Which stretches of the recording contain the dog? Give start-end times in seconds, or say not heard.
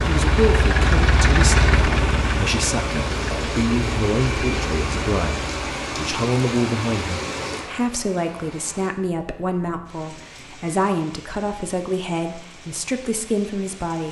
not heard.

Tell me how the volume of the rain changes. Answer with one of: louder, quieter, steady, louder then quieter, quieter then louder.
quieter.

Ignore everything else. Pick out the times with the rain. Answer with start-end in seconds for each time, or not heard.
0.0-14.0.